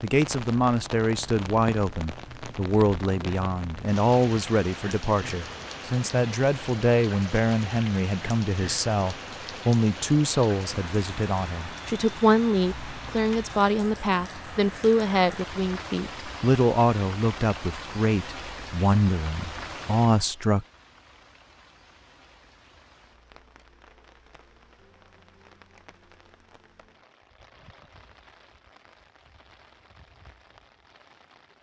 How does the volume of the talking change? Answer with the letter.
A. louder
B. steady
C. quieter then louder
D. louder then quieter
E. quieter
B.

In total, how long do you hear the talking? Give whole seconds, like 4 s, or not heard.
21 s.